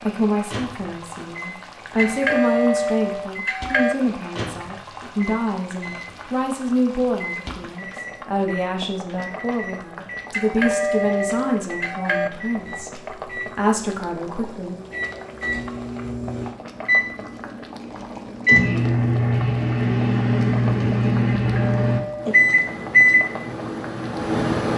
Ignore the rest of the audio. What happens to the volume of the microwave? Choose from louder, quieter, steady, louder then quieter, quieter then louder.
louder.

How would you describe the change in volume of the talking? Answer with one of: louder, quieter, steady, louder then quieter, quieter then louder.
steady.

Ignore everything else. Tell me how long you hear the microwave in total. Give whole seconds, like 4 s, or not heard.
25 s.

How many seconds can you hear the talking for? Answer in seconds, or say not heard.
15 s.